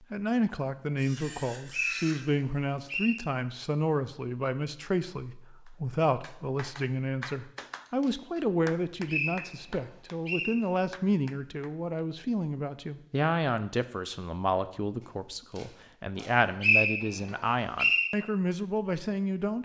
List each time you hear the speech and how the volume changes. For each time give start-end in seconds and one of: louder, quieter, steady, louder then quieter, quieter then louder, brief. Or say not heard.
0.0-19.6 steady.